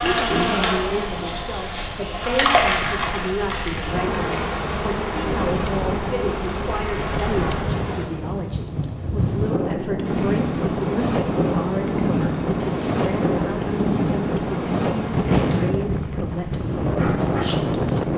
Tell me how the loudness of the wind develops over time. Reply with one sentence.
The volume of the wind goes up.